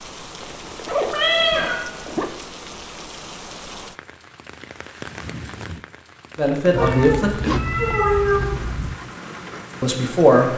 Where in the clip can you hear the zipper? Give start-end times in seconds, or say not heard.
0.4-2.4, 6.7-9.0.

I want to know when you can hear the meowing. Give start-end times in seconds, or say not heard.
1.1-1.8, 6.8-8.6.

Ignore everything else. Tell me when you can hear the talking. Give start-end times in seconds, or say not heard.
6.3-7.6, 9.8-10.5.